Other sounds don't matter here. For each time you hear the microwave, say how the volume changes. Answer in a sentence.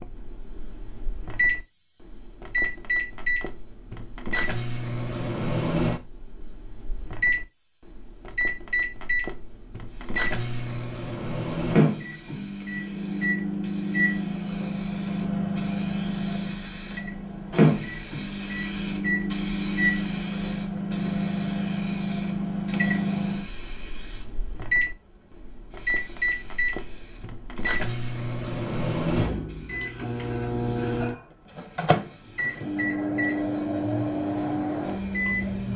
You can hear the microwave from 0.0 to 35.7 s, at a steady volume.